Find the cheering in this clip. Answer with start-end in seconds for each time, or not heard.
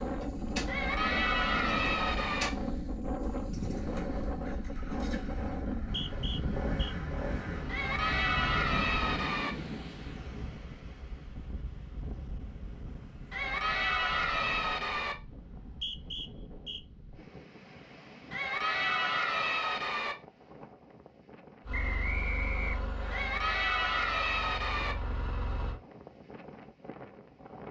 0.7-2.5, 7.7-9.5, 13.3-15.2, 18.3-20.1, 23.1-24.9.